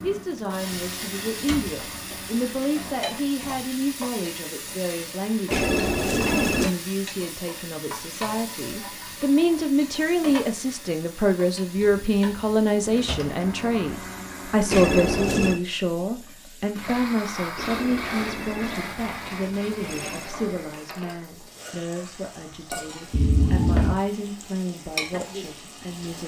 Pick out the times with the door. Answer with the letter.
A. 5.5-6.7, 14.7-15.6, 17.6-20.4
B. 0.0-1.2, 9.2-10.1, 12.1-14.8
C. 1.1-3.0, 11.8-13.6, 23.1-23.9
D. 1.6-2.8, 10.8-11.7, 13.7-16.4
C.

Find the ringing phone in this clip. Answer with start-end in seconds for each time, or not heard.
5.5-6.7, 14.7-15.6, 17.6-20.4.